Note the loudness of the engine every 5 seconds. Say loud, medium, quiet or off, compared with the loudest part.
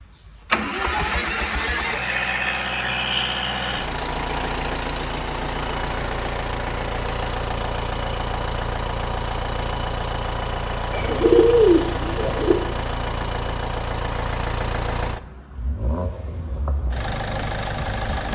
loud, loud, loud, medium.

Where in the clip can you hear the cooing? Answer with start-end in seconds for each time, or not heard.
10.9-12.6.